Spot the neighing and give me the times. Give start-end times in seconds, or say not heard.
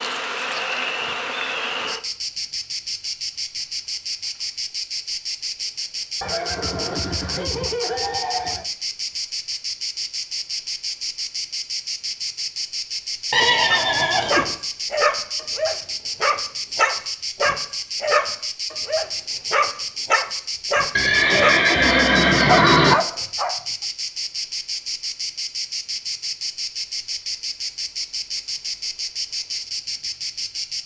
6.2-8.7, 13.3-14.6, 20.9-22.9.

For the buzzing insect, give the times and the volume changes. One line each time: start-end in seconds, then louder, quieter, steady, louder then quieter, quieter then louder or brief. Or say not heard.
0.0-30.8 steady.